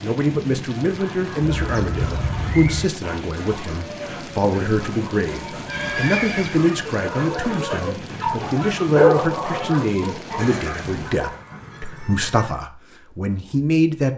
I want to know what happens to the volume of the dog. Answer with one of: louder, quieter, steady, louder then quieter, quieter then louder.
louder then quieter.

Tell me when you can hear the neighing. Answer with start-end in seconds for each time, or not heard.
1.6-2.9, 5.5-6.6, 10.3-12.6.